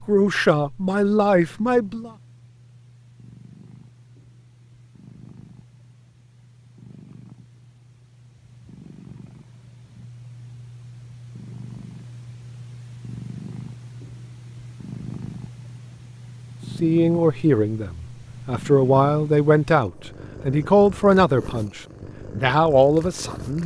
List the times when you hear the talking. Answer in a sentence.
You can hear the talking from 0.1 to 2.1 s and from 16.8 to 23.6 s.